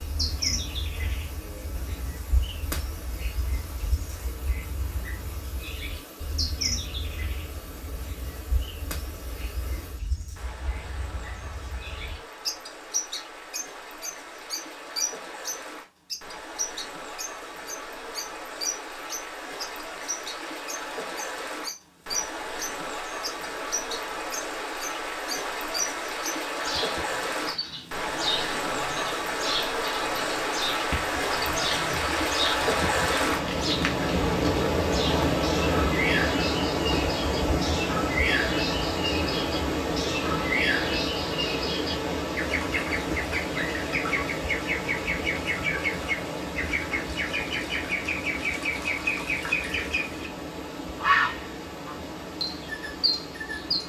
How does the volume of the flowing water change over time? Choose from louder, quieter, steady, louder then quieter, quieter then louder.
louder then quieter.